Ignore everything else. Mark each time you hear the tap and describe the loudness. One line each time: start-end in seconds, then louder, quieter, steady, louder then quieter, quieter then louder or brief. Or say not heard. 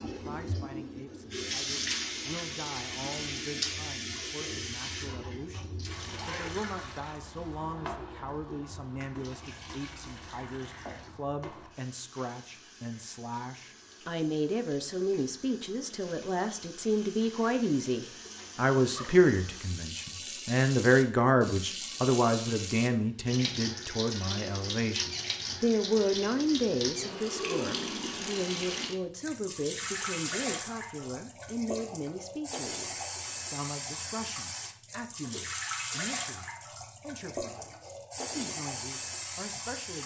0.0-40.0 quieter then louder.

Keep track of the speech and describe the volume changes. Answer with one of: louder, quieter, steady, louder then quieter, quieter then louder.
louder then quieter.